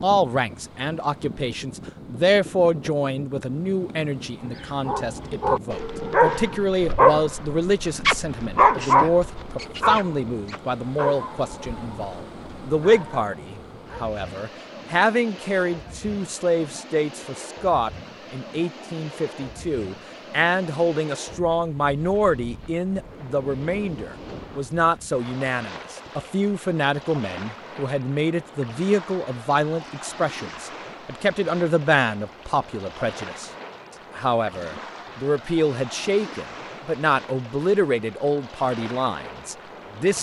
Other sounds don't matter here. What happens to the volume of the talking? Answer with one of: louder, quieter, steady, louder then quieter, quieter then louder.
steady.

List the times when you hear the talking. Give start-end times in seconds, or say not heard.
0.0-33.5, 34.1-40.1.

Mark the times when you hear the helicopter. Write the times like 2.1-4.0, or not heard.
not heard.